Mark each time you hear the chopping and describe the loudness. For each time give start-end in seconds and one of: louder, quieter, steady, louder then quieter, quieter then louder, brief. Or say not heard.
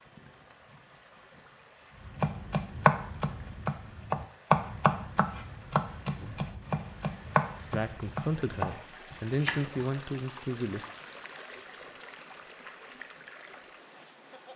2.0-9.8 quieter.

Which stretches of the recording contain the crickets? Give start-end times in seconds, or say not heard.
not heard.